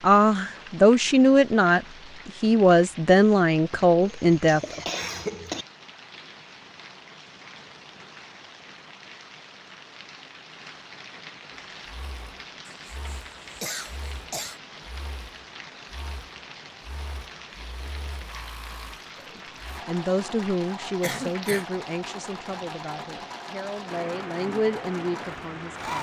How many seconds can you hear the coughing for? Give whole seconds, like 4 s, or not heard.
4 s.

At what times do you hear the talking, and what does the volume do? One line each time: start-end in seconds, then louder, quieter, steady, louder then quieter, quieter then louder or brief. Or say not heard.
0.0-4.8 steady
19.1-25.9 quieter then louder.